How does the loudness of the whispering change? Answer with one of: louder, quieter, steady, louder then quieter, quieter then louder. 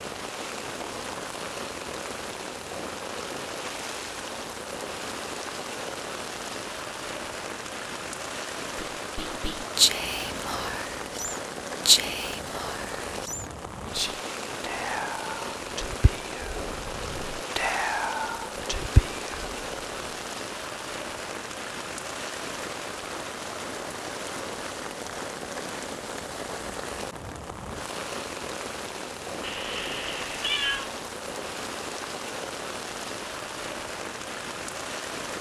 quieter then louder.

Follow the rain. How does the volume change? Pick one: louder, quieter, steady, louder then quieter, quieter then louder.
steady.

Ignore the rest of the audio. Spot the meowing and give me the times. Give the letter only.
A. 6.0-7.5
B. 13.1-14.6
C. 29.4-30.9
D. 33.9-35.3
C.